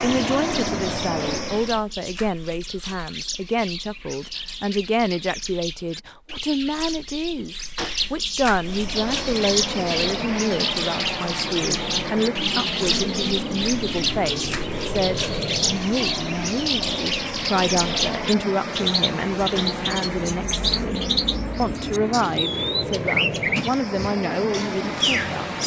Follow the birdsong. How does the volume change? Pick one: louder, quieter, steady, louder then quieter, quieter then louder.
louder.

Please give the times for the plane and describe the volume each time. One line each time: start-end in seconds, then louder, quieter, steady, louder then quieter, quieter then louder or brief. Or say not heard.
0.0-1.9 brief
8.6-25.6 steady.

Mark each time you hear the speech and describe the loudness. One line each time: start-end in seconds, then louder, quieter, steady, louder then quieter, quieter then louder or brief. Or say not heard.
0.0-25.6 steady.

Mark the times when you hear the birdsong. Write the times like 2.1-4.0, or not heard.
0.0-25.6.